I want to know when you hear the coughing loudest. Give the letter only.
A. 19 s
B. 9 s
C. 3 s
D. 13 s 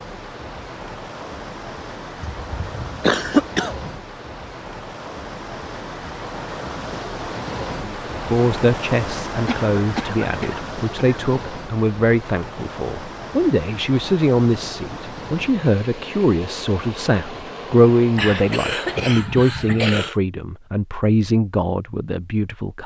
C.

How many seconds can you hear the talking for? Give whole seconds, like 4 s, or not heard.
15 s.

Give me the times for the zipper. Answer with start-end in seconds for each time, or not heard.
not heard.